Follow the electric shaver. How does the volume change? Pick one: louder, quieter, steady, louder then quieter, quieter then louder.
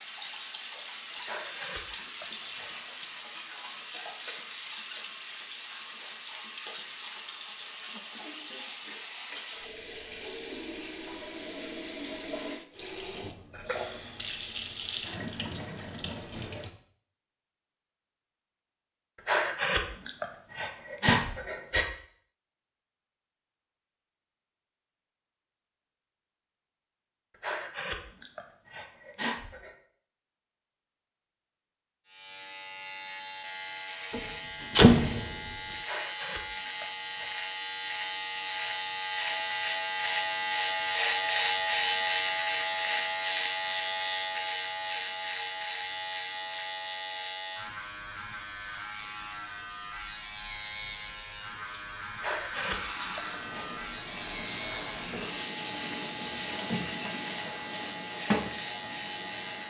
louder then quieter.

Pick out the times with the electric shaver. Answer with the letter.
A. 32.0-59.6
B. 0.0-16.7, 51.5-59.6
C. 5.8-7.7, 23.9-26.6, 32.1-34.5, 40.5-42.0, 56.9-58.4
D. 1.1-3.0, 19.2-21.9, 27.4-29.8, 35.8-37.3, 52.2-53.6
A.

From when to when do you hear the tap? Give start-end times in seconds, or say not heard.
0.0-16.7, 51.5-59.6.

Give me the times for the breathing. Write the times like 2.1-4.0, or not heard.
1.1-3.0, 19.2-21.9, 27.4-29.8, 35.8-37.3, 52.2-53.6.